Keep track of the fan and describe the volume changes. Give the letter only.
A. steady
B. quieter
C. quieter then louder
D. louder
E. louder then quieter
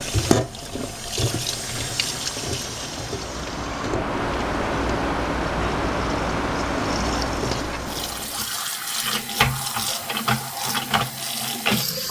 D.